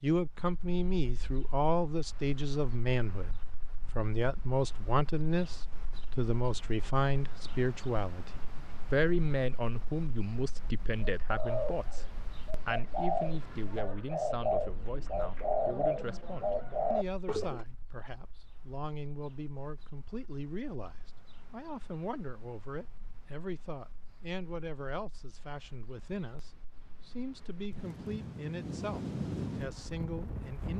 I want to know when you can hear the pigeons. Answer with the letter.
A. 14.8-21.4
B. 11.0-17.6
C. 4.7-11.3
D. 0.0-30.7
B.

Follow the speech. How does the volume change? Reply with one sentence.
The loudness of the speech goes down.